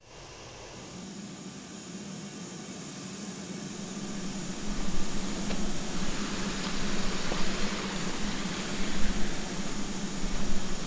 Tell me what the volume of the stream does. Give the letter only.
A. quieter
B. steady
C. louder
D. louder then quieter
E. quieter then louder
D.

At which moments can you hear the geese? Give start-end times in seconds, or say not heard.
not heard.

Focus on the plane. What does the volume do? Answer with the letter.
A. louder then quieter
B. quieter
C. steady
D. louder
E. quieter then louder
D.